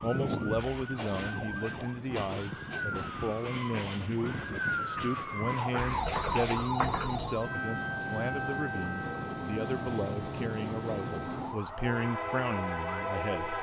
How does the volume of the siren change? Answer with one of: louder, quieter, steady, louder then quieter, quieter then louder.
louder then quieter.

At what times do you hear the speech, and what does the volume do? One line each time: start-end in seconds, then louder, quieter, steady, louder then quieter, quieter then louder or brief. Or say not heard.
0.0-13.5 steady.